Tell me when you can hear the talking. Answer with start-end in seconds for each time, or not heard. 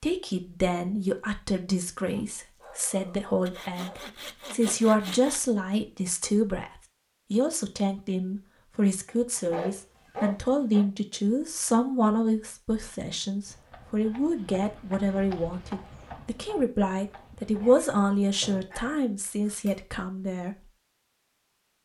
0.0-20.6.